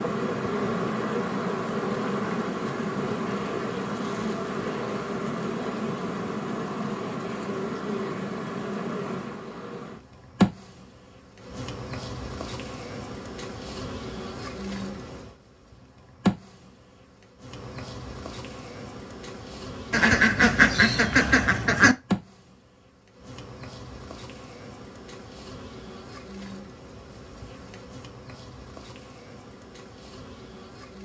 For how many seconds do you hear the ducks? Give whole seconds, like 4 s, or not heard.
2 s.